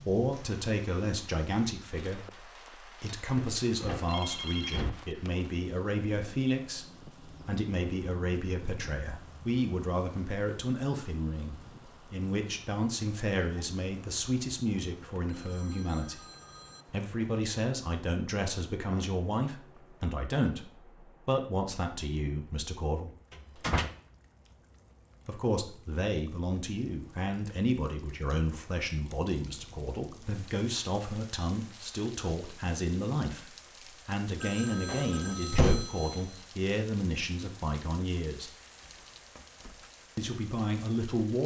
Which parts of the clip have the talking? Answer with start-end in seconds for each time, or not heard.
0.0-16.2, 16.9-23.1, 25.2-38.5, 40.1-41.4.